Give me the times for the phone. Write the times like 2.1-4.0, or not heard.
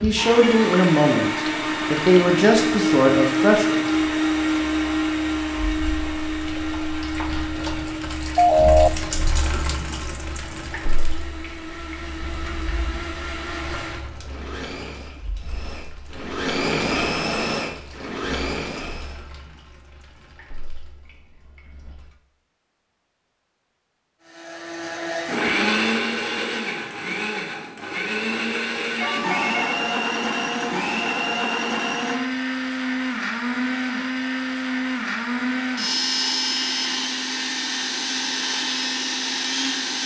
8.3-8.9, 29.0-29.8.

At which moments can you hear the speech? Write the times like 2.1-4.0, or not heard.
0.0-3.8.